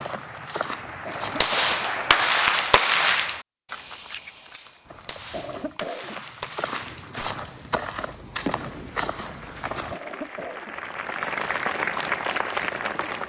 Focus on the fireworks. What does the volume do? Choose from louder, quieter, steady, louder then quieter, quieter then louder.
quieter then louder.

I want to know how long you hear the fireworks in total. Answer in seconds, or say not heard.
8 s.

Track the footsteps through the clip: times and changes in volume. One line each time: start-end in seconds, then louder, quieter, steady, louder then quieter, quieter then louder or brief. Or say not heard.
0.0-2.4 brief
4.8-10.0 louder.